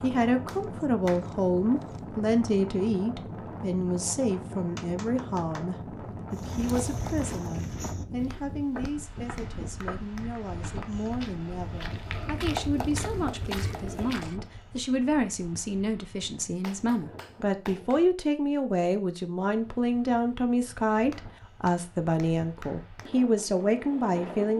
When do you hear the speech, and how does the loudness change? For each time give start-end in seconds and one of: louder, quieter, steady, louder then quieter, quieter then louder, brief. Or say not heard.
0.0-24.5 quieter then louder.